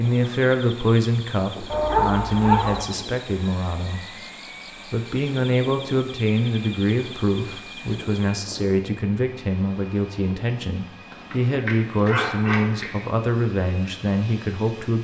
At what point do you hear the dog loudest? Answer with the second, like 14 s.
2 s.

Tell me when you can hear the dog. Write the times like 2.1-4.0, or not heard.
1.7-2.8, 11.1-13.1.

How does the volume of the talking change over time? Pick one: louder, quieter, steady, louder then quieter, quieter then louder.
steady.